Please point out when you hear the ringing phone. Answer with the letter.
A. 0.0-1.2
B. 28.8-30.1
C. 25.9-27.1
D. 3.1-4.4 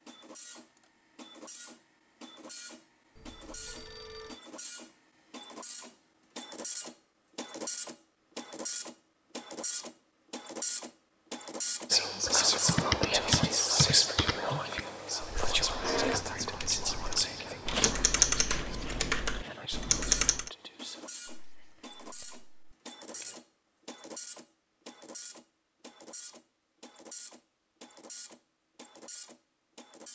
D.